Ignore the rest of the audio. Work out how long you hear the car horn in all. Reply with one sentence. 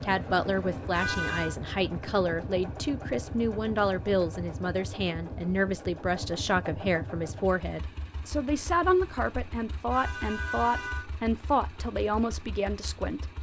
You can hear the car horn for 2 seconds altogether.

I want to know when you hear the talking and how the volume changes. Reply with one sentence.
You can hear the talking from 0.0 to 13.3 s, at a steady volume.